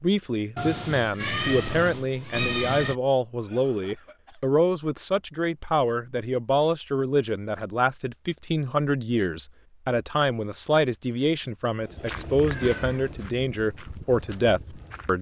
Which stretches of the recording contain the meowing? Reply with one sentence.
The meowing can be heard from 0.6 to 3.0 s and from 12.4 to 13.1 s.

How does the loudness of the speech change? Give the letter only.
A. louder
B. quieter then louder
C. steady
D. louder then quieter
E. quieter
C.